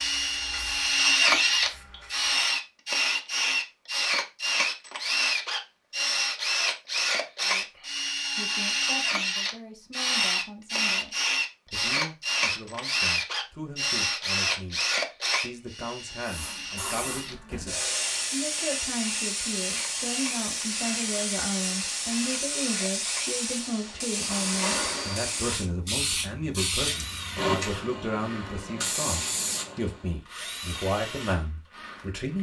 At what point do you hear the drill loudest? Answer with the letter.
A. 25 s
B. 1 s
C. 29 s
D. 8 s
B.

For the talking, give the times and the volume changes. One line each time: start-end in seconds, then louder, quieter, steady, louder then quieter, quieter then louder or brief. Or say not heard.
7.5-32.3 louder.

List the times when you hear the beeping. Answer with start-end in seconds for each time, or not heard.
not heard.